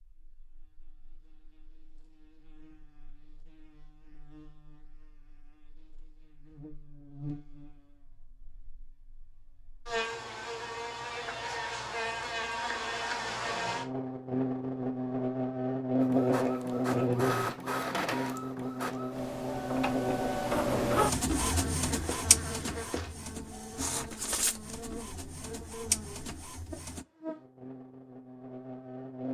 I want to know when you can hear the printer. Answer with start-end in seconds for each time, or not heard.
16.0-27.1.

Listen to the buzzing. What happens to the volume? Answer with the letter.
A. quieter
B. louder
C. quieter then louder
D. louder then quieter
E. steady
D.